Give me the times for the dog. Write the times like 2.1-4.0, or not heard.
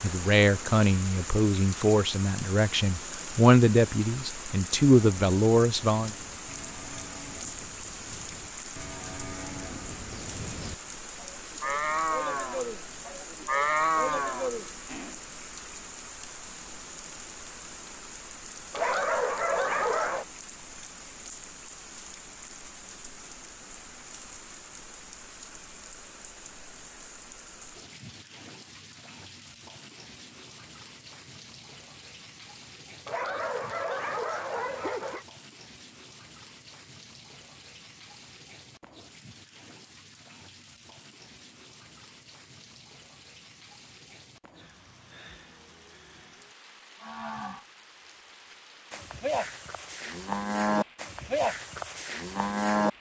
18.7-20.2, 33.0-35.2.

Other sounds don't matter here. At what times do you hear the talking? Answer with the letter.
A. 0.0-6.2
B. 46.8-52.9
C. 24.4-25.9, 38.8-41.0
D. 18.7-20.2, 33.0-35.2
A.